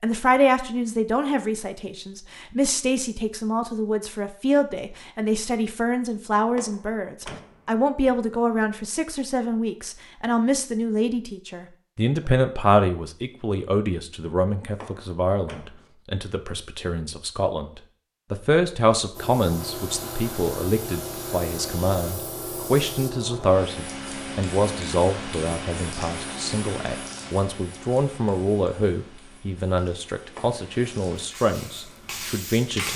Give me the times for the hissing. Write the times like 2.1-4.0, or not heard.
19.1-32.9.